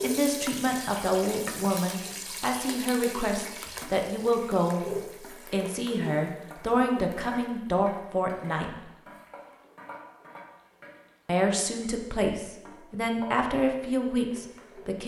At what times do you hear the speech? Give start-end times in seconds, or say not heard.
0.0-4.8, 5.5-8.7, 11.2-15.0.